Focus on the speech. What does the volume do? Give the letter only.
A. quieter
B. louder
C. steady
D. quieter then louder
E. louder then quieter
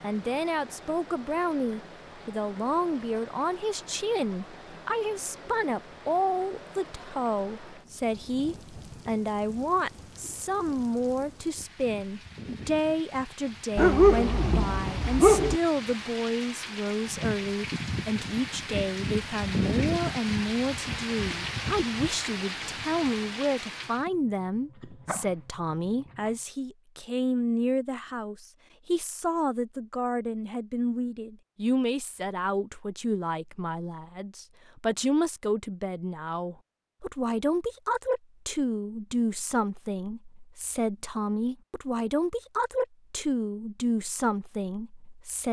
C.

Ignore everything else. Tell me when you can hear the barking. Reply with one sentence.
You can hear the barking from 13.8 to 15.6 s and from 24.8 to 26.3 s.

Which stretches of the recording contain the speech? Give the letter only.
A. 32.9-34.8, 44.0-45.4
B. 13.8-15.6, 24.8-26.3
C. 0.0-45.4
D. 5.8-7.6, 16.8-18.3
C.